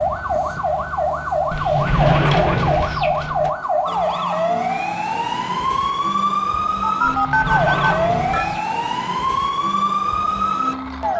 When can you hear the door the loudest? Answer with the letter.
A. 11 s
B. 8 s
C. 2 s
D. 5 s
C.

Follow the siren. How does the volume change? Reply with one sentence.
The loudness of the siren stays about the same.